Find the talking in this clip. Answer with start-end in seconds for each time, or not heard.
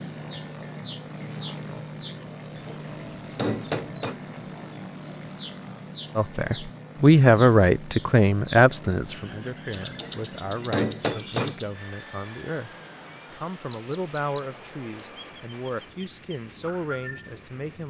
6.2-12.7, 13.3-17.8.